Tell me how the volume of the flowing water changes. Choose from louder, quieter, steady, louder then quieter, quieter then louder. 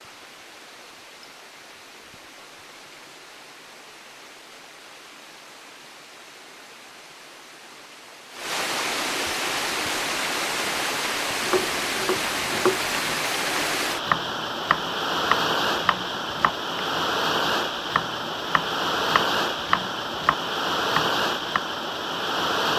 louder.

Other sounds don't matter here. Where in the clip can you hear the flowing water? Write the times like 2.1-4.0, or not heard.
0.0-22.7.